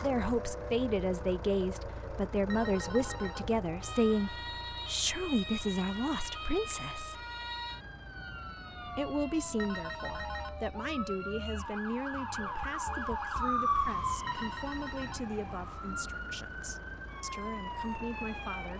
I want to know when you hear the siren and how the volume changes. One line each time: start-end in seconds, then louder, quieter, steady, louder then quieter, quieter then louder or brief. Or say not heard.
0.0-18.7 louder then quieter.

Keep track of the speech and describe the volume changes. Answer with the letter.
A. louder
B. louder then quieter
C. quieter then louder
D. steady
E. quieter
E.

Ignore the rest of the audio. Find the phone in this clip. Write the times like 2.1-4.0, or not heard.
2.5-3.5, 9.6-10.6, 14.2-15.3.